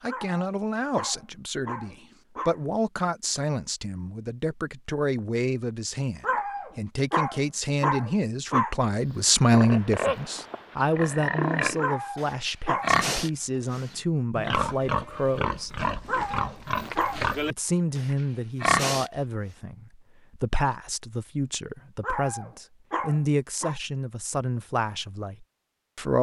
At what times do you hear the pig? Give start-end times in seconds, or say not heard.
9.5-19.1.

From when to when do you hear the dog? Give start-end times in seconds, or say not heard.
0.1-2.6, 6.2-8.8, 11.8-12.9, 16.1-17.2, 22.0-23.8.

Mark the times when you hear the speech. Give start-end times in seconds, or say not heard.
0.0-15.8, 17.5-26.1.